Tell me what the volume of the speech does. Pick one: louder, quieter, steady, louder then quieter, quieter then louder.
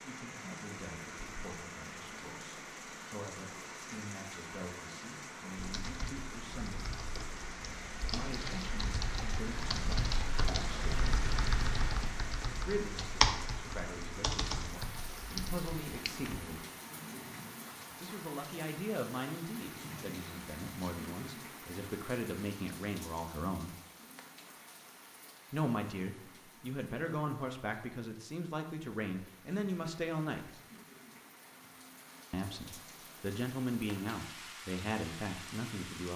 louder.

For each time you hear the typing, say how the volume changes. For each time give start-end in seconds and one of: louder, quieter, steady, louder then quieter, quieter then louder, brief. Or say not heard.
5.5-16.6 louder then quieter.